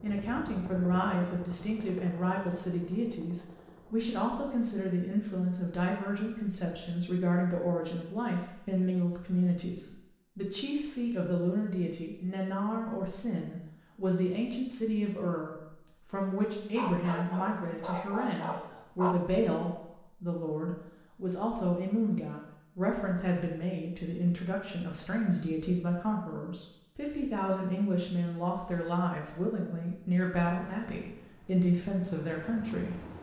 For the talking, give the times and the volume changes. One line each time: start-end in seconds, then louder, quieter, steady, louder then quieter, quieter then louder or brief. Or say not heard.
0.0-33.0 steady.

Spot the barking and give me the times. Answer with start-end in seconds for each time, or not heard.
16.8-19.2.